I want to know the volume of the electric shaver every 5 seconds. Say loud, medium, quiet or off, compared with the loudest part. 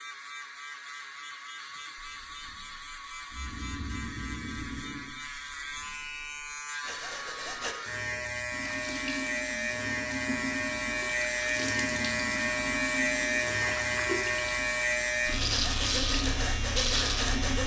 quiet, medium, loud, loud.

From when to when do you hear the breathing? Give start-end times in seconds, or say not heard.
1.9-7.8, 15.3-17.6.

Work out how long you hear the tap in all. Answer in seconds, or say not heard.
9 s.